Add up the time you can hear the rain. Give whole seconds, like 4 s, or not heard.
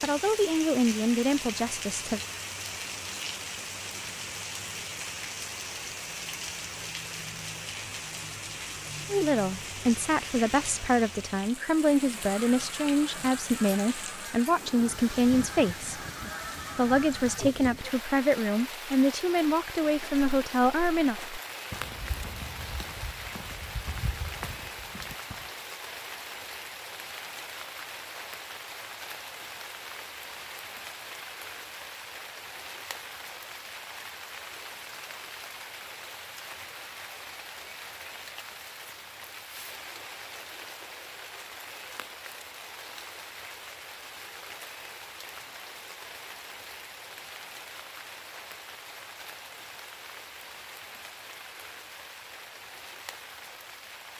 54 s.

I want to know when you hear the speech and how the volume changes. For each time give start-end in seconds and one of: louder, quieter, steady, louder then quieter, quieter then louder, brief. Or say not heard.
0.0-2.2 brief
9.1-16.0 steady
16.8-21.1 steady.